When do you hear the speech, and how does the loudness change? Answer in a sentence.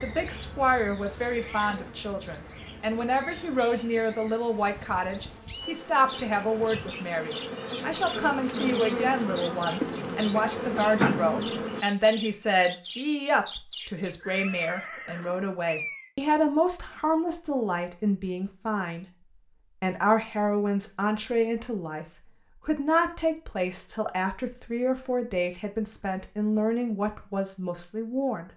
The speech can be heard from 0.0 to 28.5 s, at a steady volume.